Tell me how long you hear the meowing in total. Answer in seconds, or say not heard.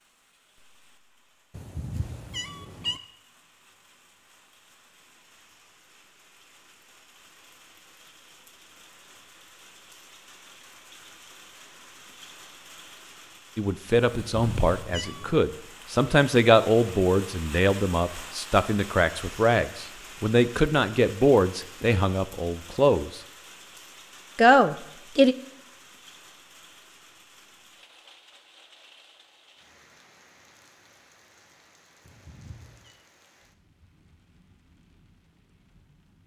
4 s.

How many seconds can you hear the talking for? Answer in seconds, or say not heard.
11 s.